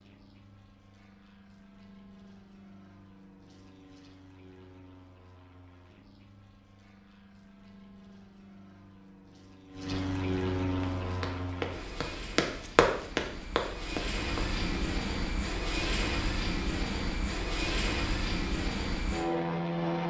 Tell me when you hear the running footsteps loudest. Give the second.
13 s.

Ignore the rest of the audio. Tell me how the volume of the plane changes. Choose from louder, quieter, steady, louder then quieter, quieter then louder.
louder.